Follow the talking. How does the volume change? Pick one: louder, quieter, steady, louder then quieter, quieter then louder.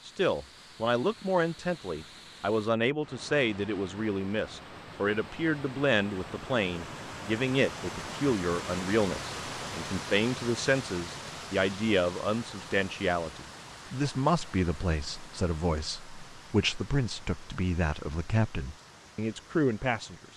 steady.